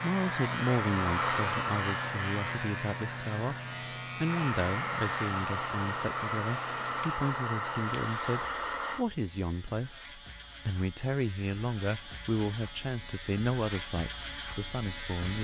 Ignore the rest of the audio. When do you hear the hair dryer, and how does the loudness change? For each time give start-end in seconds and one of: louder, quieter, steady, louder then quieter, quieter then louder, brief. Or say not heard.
0.1-2.6 brief
4.2-9.1 steady.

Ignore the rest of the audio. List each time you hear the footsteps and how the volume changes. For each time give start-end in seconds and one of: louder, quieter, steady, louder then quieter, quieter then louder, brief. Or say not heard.
not heard.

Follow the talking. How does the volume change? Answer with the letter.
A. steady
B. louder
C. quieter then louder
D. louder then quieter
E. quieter
A.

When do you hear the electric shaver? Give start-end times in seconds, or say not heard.
0.0-15.3.